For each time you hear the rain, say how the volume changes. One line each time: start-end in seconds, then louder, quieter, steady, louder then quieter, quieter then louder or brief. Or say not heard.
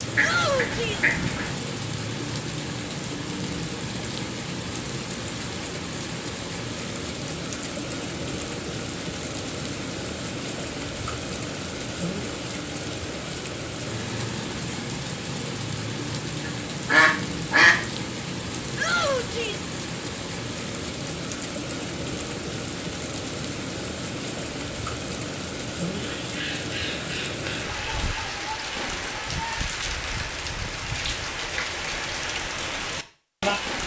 0.0-33.8 steady.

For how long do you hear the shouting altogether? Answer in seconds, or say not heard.
2 s.